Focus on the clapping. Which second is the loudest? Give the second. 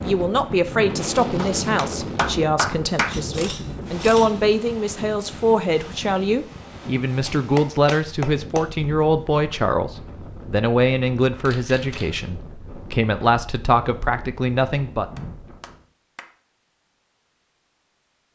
3 s.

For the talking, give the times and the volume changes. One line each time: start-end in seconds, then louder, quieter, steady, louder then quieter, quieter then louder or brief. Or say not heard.
0.0-15.1 steady.